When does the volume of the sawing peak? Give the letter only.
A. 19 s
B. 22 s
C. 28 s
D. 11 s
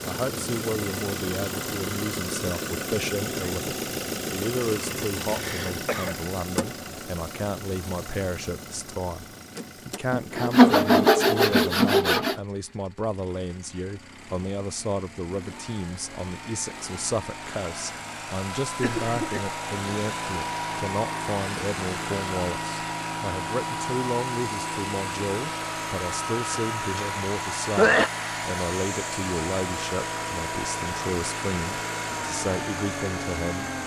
D.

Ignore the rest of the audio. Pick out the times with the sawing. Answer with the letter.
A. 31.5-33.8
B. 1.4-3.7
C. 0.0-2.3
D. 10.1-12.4
D.